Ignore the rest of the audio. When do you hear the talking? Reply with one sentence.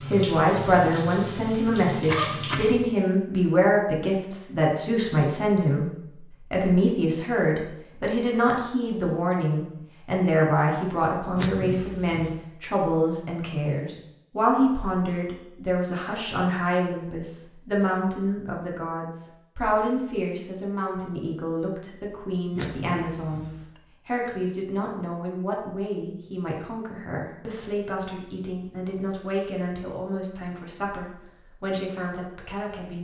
You can hear the talking from 0.1 to 32.9 s.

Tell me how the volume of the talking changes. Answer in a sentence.
The volume of the talking goes down.